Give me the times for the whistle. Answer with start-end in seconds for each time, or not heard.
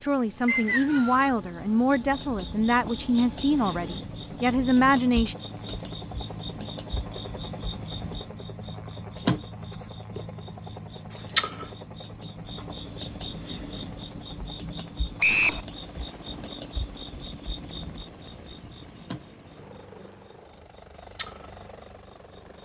0.5-1.3, 15.2-15.6.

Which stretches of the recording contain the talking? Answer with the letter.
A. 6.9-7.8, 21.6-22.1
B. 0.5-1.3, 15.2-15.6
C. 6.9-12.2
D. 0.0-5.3
D.